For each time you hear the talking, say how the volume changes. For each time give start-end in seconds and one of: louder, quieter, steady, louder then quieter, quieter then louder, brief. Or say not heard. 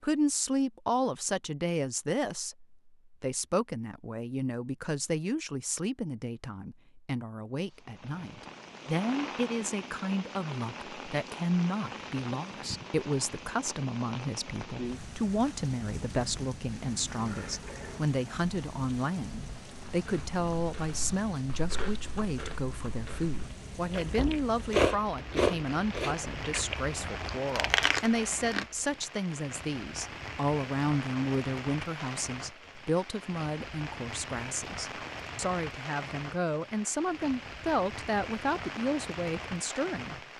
0.0-40.1 steady.